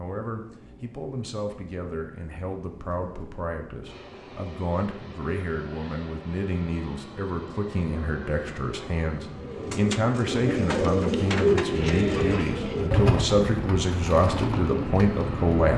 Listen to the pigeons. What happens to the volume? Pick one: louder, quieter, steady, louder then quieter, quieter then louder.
louder then quieter.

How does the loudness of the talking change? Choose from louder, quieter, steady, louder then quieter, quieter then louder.
louder.